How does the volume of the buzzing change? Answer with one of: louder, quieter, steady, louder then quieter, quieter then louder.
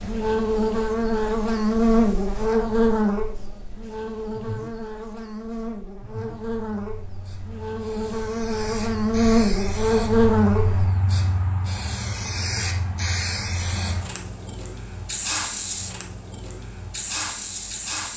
quieter then louder.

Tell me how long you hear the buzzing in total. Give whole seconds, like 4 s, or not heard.
11 s.